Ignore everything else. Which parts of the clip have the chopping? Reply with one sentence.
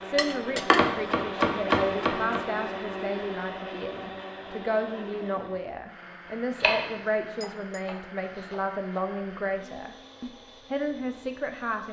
The chopping can be heard from 0.7 to 2.4 s and from 6.6 to 9.0 s.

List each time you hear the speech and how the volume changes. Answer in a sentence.
The speech can be heard from 0.0 to 11.8 s, at a steady volume.